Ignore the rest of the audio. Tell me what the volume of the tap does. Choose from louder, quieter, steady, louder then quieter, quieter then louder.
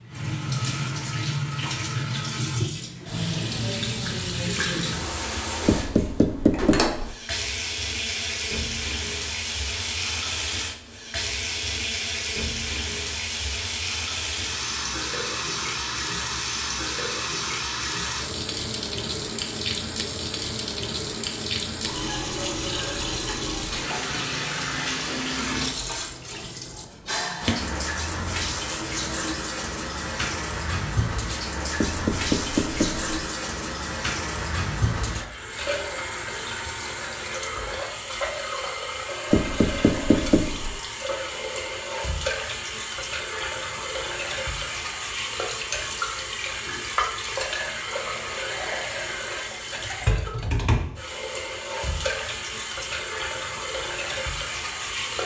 steady.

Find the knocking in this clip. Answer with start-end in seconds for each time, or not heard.
5.7-7.1, 31.8-33.0, 39.3-40.8.